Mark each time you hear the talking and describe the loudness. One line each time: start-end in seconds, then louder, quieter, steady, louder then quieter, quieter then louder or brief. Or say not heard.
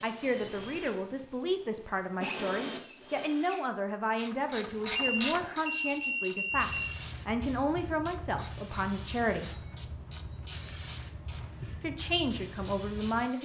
0.0-9.6 steady
11.8-13.4 brief.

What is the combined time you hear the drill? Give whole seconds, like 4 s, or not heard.
4 s.